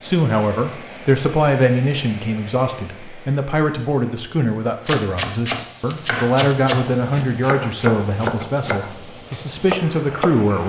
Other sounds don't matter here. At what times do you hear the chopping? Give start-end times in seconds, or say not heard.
4.8-10.4.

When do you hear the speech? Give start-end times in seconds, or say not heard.
0.0-10.6.